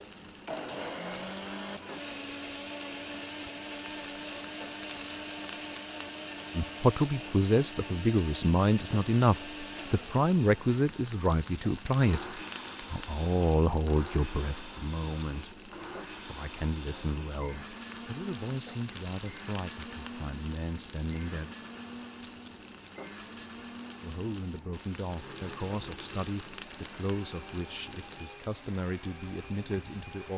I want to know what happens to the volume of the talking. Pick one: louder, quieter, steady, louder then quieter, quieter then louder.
quieter.